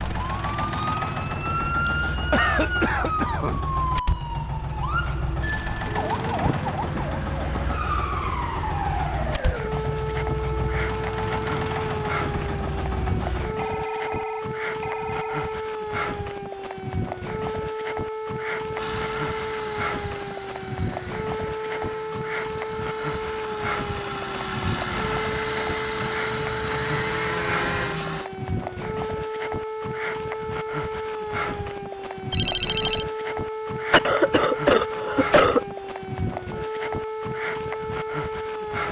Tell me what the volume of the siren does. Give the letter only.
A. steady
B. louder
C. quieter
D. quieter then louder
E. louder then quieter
A.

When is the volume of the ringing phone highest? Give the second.
33 s.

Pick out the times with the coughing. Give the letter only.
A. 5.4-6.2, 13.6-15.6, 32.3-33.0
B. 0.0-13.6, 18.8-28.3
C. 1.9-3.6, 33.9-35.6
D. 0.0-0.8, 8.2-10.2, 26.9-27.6
C.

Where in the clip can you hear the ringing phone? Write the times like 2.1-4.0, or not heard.
5.4-6.2, 13.6-15.6, 32.3-33.0.